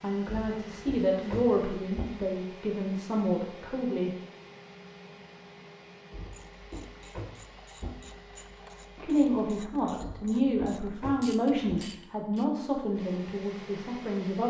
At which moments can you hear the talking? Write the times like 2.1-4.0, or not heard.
0.0-4.1, 8.9-14.4.